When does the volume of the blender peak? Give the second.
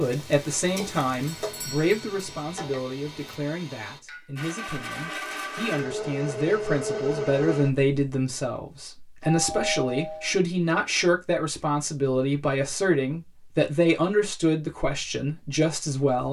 7 s.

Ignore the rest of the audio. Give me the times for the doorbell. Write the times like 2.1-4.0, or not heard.
1.2-2.2, 9.2-10.3.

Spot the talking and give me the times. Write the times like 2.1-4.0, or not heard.
0.0-16.2.